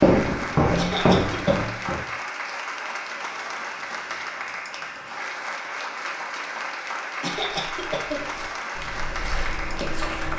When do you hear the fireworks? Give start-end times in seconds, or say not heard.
not heard.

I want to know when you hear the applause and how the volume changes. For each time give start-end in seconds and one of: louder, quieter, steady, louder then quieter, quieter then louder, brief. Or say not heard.
0.0-10.3 steady.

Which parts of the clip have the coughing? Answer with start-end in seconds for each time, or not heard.
0.8-1.7, 7.2-8.2.